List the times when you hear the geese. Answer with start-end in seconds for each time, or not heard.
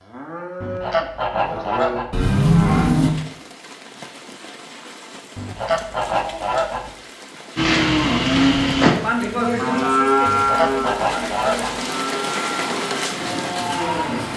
0.6-2.1, 5.3-6.9, 10.2-11.8.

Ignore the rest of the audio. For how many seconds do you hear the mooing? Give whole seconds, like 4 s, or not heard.
10 s.